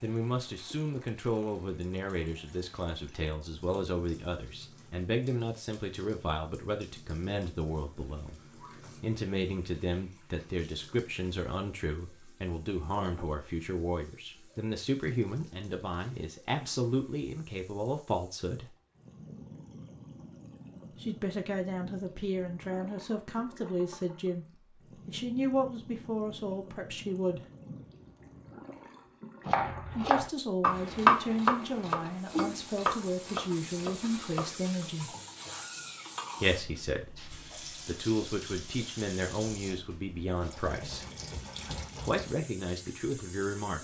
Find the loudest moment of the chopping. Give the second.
31 s.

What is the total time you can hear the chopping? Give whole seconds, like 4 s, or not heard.
5 s.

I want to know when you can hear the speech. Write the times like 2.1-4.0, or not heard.
0.0-8.4, 9.0-18.7, 21.0-27.4, 29.9-35.1, 36.4-41.0, 42.0-43.7.